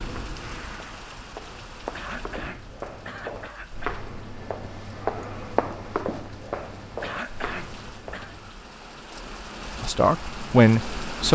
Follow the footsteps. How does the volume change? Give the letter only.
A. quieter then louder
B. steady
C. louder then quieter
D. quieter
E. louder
C.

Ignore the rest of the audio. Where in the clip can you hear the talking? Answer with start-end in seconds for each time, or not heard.
9.8-11.3.